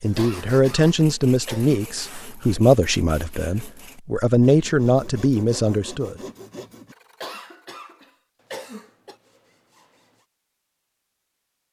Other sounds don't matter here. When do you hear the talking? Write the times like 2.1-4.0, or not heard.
0.0-6.2.